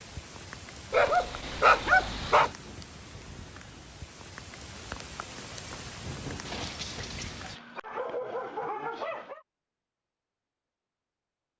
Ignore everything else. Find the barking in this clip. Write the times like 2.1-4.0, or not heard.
0.9-2.5, 6.5-9.4.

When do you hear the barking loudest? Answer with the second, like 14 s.
2 s.